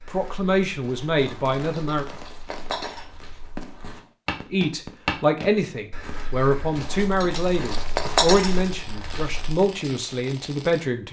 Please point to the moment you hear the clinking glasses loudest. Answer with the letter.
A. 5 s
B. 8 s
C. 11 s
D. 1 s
B.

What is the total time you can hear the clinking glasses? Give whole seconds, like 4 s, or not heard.
3 s.